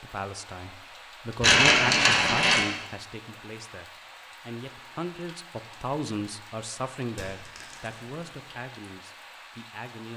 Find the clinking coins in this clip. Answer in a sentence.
You can hear the clinking coins from 1.4 to 2.6 s and from 7.2 to 8.6 s.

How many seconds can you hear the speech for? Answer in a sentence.
You can hear the speech for 10 seconds altogether.